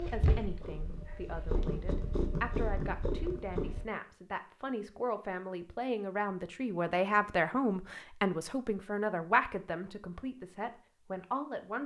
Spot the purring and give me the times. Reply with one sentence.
The purring can be heard from 0.0 to 3.9 s.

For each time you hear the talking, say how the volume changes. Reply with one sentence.
You can hear the talking from 0.0 to 11.8 s, getting louder.